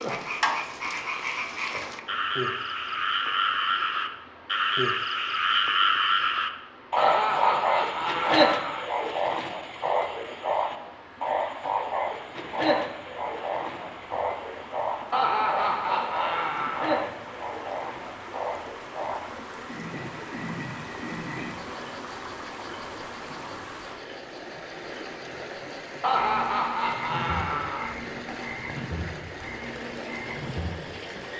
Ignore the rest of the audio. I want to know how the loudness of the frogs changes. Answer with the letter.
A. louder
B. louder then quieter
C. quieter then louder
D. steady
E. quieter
E.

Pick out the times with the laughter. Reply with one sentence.
The laughter can be heard from 7.0 to 8.8 s, from 15.1 to 17.1 s and from 26.0 to 27.9 s.